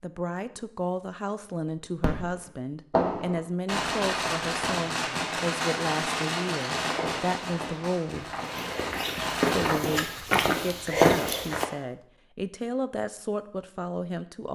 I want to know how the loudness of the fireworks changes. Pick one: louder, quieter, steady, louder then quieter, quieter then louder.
quieter.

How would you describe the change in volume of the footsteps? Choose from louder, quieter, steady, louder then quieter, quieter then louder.
louder.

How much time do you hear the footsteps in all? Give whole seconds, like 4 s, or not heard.
5 s.